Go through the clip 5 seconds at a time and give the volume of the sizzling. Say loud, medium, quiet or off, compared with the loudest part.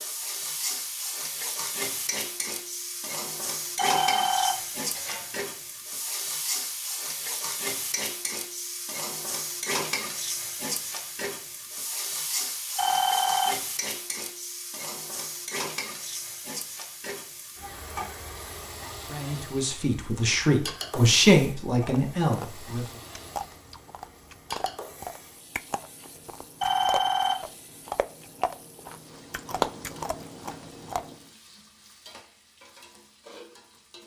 loud, loud, loud, medium, medium, quiet, quiet.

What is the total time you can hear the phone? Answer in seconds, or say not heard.
3 s.